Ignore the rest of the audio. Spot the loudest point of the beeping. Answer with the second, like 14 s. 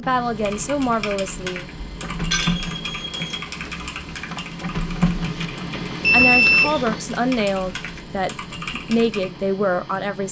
6 s.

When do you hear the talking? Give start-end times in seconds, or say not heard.
0.0-1.6, 6.1-10.2.